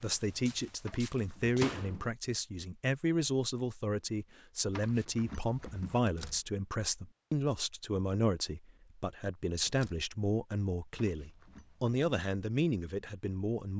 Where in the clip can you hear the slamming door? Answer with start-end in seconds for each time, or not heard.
1.6-2.0, 6.0-6.5, 9.7-10.1.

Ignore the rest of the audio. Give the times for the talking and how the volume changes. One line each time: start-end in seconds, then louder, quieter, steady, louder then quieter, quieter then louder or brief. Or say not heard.
0.0-13.7 steady.